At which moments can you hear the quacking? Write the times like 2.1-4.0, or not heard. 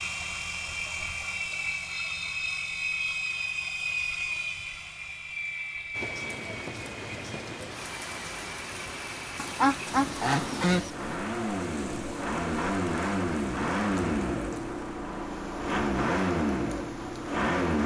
9.3-10.9.